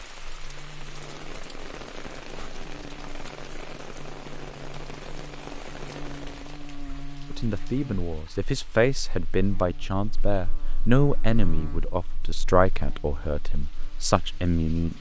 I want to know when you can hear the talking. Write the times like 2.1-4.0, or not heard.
7.3-14.9.